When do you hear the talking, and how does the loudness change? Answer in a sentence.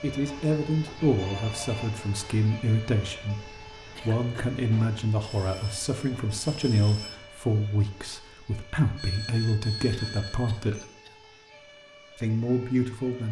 You can hear the talking from 0.0 to 10.8 s, at a steady volume; and briefly from 12.2 to 13.2 s.